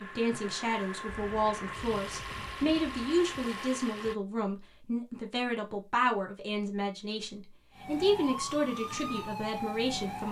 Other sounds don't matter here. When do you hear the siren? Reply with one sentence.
The siren can be heard from 7.7 to 10.2 s.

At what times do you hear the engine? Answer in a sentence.
You can hear the engine from 0.0 to 4.2 s.